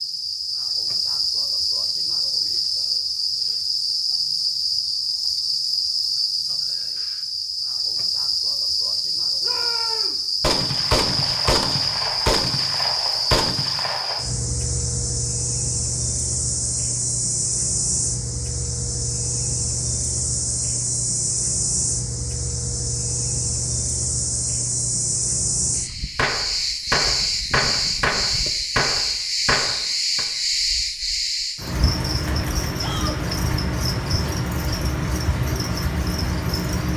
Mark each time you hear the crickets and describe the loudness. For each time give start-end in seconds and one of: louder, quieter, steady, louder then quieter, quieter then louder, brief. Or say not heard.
0.0-36.9 steady.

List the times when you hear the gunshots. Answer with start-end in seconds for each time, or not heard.
10.4-14.2, 26.1-30.2.